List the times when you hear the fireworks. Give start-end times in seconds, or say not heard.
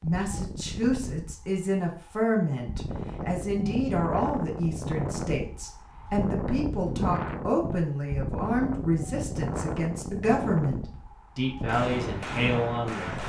10.9-13.2.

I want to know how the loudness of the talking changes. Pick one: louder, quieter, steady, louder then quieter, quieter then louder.
steady.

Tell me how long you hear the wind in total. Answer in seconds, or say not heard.
13 s.